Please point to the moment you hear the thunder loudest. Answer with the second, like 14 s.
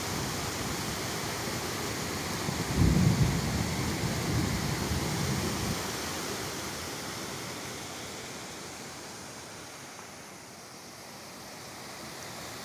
3 s.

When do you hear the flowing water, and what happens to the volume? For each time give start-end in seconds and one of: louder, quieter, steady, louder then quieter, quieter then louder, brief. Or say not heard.
0.0-12.6 quieter.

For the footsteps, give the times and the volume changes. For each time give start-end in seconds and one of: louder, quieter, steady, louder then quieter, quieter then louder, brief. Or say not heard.
not heard.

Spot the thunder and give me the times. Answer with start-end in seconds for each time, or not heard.
2.6-5.8.